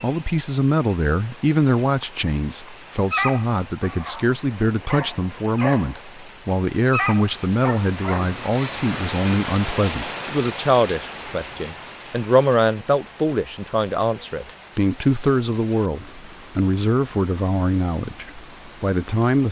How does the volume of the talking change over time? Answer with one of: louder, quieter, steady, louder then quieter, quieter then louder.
steady.